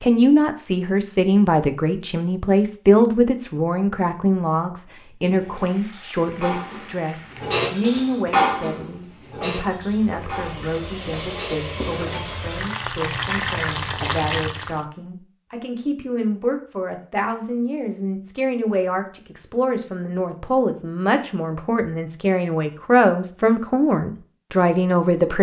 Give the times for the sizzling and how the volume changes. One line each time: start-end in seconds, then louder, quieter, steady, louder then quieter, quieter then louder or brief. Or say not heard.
5.2-14.8 louder.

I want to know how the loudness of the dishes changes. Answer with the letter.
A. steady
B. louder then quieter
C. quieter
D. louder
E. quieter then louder
B.